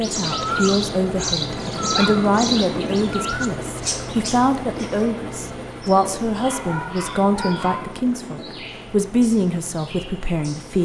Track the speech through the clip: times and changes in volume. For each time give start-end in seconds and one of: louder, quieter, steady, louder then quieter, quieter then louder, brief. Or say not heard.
0.0-10.8 steady.